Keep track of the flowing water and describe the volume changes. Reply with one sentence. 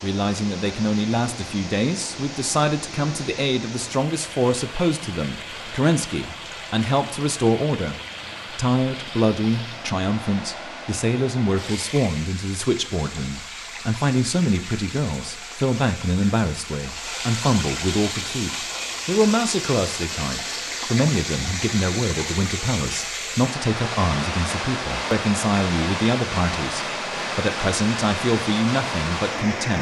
The volume of the flowing water goes up.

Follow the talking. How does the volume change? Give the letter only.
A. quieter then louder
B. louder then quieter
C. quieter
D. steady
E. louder
D.